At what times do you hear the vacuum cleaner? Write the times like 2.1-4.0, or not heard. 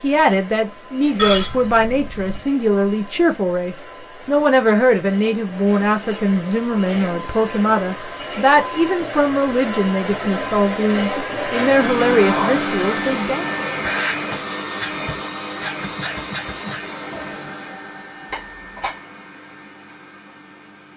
0.0-20.9.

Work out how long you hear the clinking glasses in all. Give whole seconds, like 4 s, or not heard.
2 s.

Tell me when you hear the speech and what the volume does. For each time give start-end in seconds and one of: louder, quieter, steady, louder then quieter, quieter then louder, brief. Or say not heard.
0.0-13.5 steady.